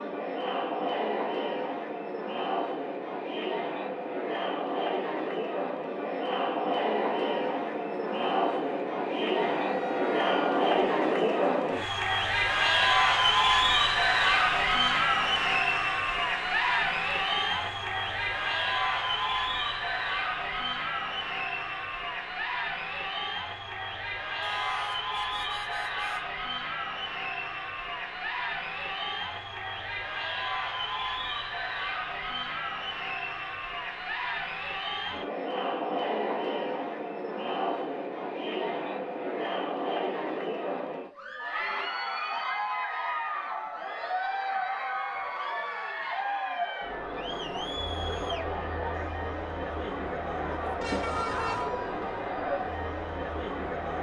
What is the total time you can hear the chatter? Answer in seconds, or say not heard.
54 s.